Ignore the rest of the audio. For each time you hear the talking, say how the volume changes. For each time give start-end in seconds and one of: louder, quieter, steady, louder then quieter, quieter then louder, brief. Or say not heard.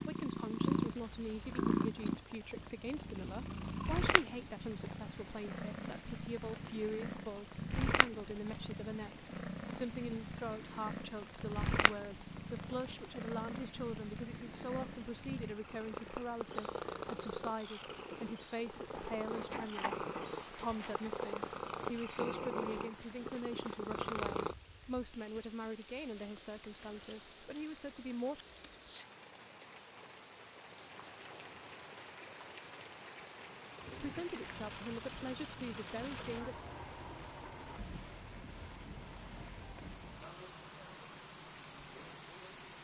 0.0-28.4 steady
34.0-36.5 brief.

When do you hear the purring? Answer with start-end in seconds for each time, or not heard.
0.0-24.6.